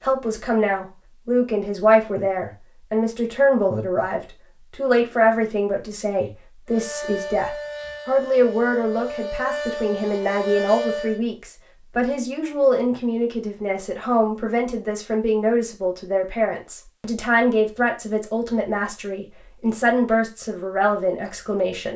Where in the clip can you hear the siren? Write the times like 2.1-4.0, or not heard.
6.7-11.2.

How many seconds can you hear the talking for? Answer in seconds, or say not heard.
22 s.